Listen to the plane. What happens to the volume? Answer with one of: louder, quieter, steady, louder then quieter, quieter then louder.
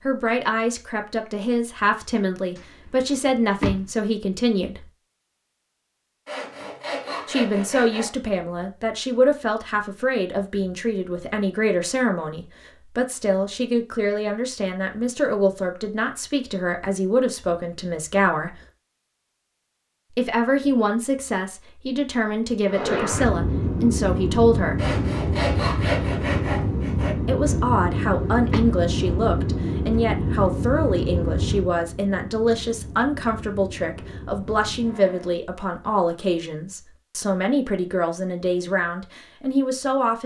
quieter.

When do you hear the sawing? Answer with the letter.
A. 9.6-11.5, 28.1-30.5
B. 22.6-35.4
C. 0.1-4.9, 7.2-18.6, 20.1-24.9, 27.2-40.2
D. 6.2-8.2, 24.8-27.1
D.